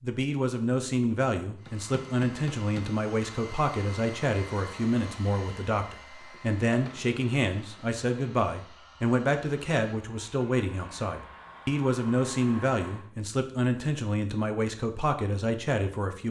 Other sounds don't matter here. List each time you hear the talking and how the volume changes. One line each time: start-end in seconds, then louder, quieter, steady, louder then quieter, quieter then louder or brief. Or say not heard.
0.0-16.2 steady.